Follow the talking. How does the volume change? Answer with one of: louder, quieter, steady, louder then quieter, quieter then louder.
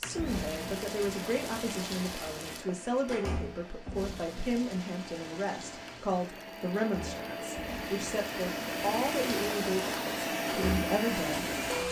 steady.